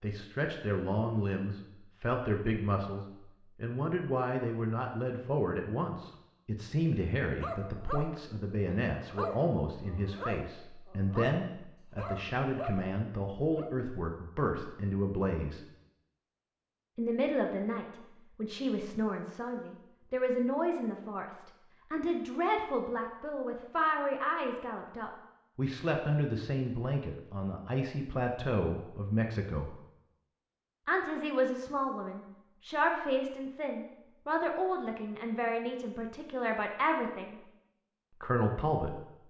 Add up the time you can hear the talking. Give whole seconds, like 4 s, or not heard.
36 s.